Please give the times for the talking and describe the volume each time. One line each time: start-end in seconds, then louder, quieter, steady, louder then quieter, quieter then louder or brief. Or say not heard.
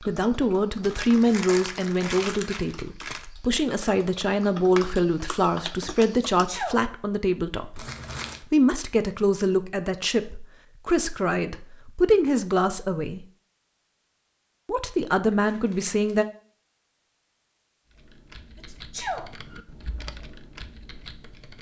0.0-13.2 steady
14.7-16.2 brief.